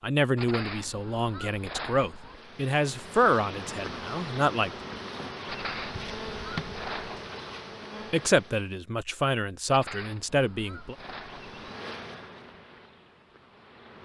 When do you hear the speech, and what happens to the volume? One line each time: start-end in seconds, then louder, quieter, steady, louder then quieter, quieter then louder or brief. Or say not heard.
0.0-4.7 louder then quieter
8.1-10.9 brief.